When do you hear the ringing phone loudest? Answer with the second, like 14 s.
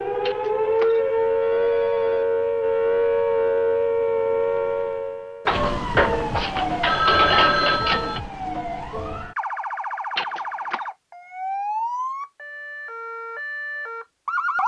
7 s.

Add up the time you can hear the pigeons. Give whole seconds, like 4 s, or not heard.
not heard.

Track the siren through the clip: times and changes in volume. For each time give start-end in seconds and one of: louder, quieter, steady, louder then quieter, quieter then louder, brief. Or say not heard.
0.0-14.6 quieter.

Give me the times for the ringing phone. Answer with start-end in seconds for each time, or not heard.
0.2-2.2, 5.5-8.2, 10.2-10.8.